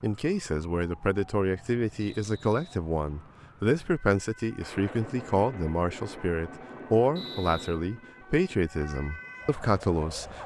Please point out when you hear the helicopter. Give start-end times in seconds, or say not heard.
not heard.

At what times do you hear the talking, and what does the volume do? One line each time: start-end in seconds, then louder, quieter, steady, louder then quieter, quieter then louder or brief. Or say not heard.
0.0-10.4 steady.